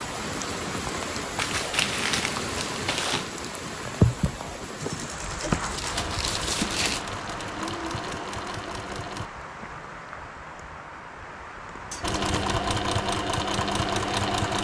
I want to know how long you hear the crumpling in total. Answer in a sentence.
You can hear the crumpling for 4 seconds altogether.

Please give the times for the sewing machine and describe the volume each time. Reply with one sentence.
You can hear the sewing machine from 4.8 to 9.3 s, at a steady volume; and briefly from 12.0 to 14.6 s.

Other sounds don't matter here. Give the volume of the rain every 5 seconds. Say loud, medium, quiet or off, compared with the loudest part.
loud, medium, medium.